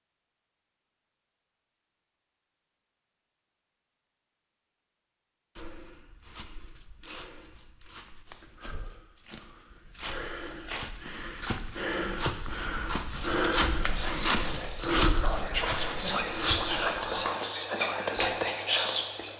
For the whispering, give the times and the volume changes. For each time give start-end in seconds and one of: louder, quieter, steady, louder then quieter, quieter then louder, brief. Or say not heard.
13.8-19.3 louder.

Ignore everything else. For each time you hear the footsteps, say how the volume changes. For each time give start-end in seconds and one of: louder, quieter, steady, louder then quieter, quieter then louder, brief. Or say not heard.
5.5-16.9 louder.